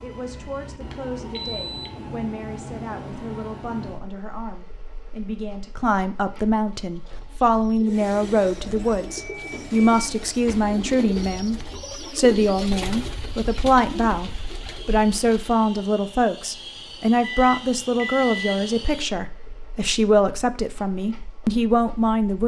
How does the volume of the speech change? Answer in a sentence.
The volume of the speech goes up.